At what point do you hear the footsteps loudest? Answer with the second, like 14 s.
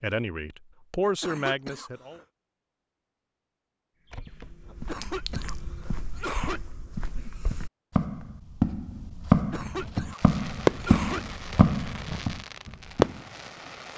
9 s.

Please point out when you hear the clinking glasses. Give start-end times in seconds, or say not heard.
5.0-5.7.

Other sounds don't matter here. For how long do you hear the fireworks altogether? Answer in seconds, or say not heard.
4 s.